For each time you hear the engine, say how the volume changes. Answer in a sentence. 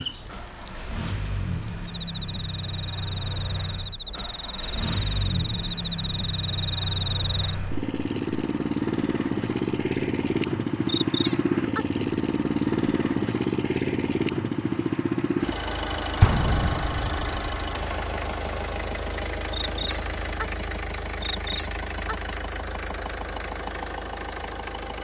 You can hear the engine from 0.1 to 24.9 s, getting louder then quieter.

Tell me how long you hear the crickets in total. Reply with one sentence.
The crickets can be heard for 25 seconds in total.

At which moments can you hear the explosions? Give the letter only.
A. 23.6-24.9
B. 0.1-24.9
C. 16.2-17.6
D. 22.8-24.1
C.